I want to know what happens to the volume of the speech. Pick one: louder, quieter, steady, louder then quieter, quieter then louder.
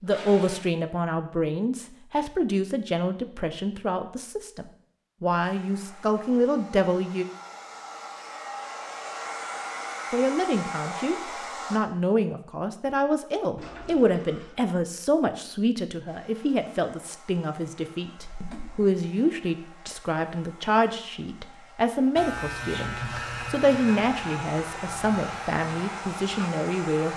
steady.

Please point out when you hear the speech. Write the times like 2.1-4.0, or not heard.
0.0-7.2, 10.1-27.1.